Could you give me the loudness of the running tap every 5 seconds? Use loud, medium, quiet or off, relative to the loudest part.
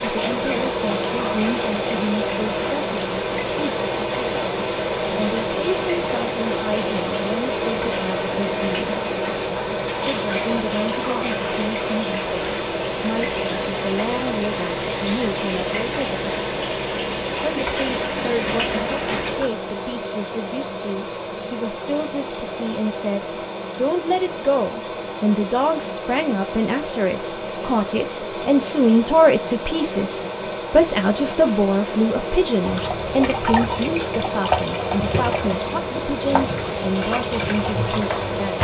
medium, medium, loud, loud, off, off, loud, loud.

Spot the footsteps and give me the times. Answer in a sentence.
You can't hear the footsteps here.